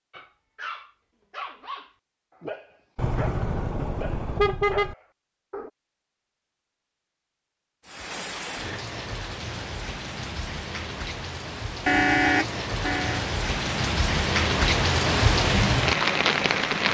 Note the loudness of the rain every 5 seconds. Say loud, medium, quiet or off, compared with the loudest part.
off, quiet, medium, loud.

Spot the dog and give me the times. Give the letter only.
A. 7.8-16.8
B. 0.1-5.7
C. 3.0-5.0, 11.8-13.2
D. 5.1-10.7
B.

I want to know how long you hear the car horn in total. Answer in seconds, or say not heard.
3 s.